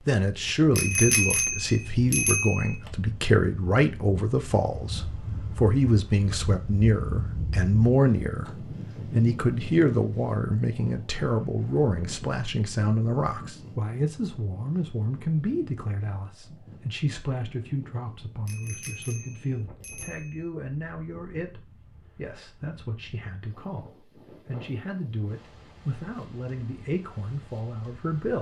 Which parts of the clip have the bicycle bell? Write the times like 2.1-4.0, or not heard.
0.8-2.8, 18.4-20.4.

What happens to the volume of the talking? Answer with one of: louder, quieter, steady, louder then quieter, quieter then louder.
quieter.